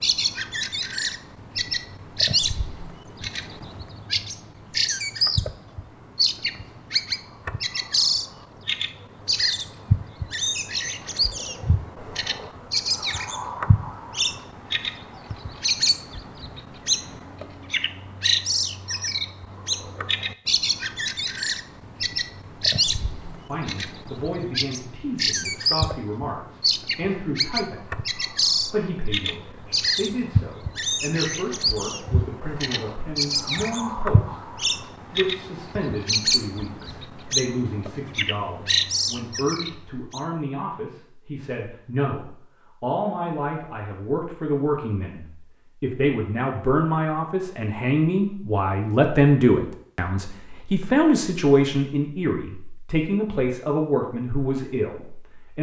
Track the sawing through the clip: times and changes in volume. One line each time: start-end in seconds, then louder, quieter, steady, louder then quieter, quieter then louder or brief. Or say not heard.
not heard.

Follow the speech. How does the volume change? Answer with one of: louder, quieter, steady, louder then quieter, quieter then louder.
louder.